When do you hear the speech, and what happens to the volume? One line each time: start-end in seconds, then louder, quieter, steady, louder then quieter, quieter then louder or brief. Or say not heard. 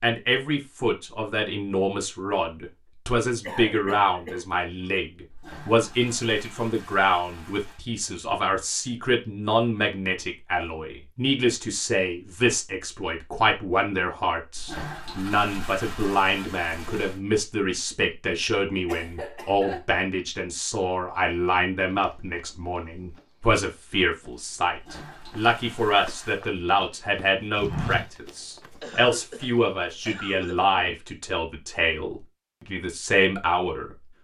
0.0-34.0 steady.